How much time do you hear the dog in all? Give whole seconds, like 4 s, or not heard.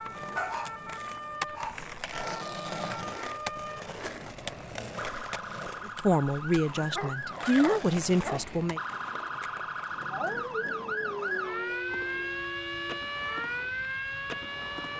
6 s.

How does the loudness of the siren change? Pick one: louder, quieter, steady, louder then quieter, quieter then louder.
louder.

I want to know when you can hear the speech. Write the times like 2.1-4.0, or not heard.
5.8-8.8.